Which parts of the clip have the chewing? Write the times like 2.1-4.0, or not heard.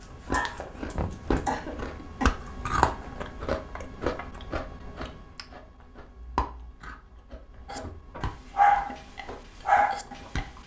0.0-10.6.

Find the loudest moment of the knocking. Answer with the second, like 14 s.
1 s.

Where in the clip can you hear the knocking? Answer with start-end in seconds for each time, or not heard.
0.9-1.6, 7.8-8.4.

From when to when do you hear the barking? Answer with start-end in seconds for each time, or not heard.
0.0-1.5, 7.7-10.4.